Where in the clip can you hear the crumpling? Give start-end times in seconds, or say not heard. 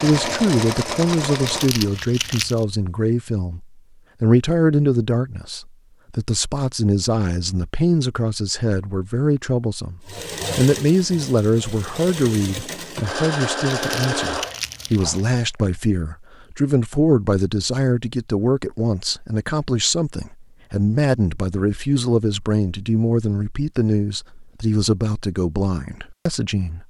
1.4-2.6, 13.7-15.4.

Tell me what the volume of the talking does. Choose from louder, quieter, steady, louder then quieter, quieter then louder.
steady.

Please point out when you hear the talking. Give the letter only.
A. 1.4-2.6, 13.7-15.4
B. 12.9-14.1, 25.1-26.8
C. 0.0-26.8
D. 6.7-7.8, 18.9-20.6
C.